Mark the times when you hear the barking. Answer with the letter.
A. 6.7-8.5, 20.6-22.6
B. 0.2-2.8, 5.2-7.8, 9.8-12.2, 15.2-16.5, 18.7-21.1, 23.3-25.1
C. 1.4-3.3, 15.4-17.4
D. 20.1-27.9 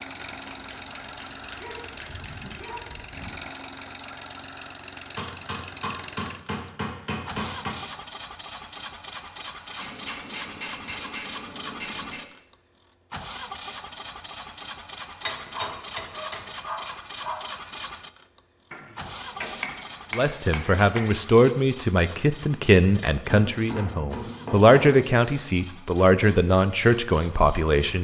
C.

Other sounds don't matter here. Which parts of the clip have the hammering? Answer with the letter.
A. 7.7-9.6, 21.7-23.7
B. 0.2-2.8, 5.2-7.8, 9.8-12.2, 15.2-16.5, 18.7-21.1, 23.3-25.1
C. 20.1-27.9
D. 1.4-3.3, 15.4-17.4
B.